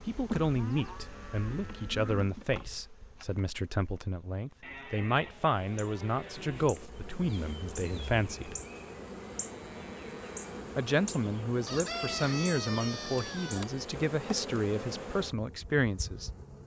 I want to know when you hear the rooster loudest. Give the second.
12 s.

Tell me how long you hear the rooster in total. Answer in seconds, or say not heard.
2 s.